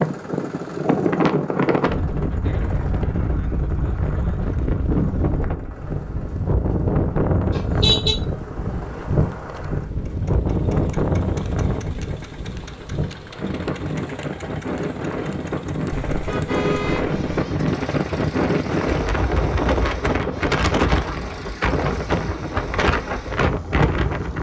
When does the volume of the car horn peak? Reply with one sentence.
The volume of the car horn peaks at 8 seconds.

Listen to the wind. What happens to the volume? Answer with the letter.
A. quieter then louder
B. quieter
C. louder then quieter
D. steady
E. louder
D.